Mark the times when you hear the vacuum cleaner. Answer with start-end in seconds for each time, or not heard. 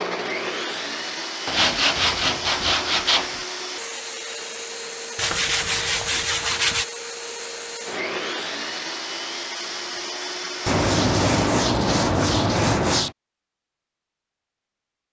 0.0-11.7.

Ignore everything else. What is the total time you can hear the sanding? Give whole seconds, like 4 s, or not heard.
6 s.